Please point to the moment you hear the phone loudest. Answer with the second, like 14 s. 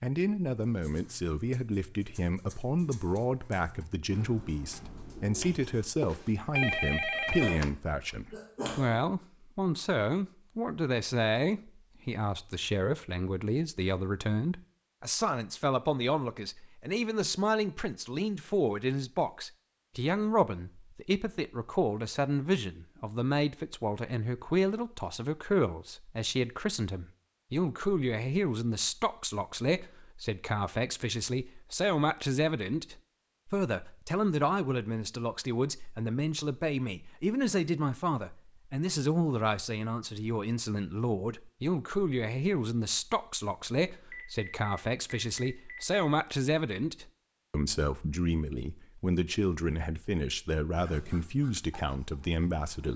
7 s.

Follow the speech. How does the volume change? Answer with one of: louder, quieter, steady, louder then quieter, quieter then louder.
steady.